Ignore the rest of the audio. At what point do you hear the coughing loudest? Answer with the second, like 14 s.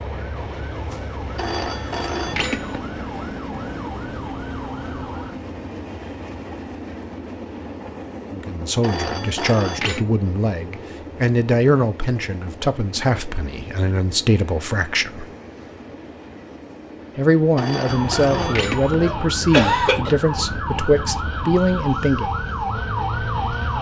20 s.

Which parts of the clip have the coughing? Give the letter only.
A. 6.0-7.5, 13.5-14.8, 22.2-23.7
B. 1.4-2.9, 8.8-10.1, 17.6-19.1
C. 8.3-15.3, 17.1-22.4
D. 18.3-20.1
D.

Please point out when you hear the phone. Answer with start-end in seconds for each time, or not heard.
1.4-2.9, 8.8-10.1, 17.6-19.1.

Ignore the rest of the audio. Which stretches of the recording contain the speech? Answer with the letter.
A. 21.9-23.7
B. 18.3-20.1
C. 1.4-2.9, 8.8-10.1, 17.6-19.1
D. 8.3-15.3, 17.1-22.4
D.